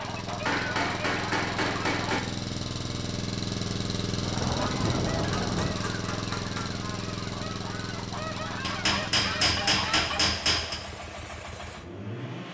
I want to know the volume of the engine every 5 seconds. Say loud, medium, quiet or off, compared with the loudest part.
loud, loud, medium.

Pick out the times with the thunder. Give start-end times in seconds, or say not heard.
4.2-5.8.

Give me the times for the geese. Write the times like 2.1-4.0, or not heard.
0.0-2.1, 4.5-10.2.